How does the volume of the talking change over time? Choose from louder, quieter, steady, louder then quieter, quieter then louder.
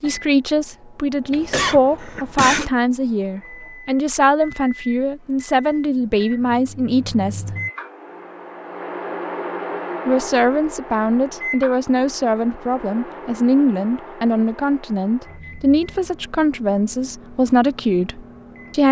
steady.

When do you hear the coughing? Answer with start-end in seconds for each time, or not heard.
1.3-2.7.